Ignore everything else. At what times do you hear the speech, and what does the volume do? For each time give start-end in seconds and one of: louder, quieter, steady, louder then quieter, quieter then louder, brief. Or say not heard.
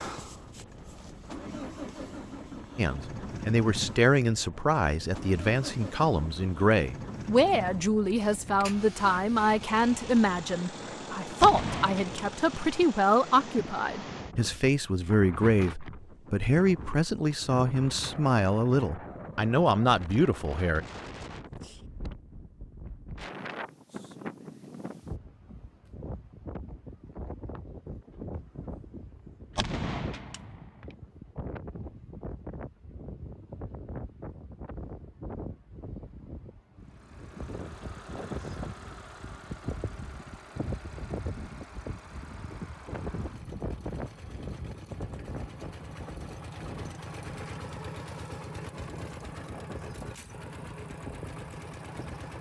2.8-20.8 steady.